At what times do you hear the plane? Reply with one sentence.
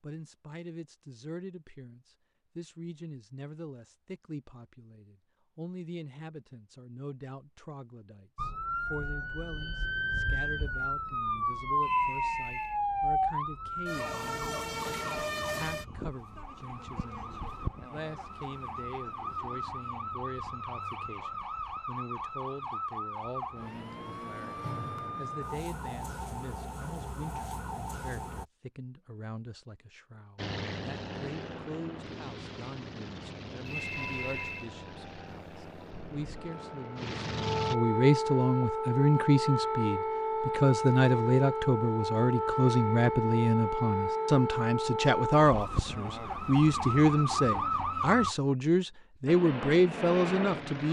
You can hear the plane from 30.4 to 37.8 s and from 49.2 to 50.8 s.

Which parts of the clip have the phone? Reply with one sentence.
You can hear the phone from 11.8 to 12.8 s and from 33.6 to 34.7 s.